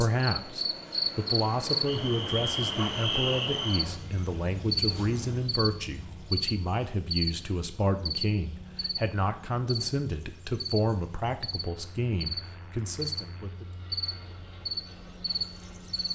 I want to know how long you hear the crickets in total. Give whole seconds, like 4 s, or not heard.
16 s.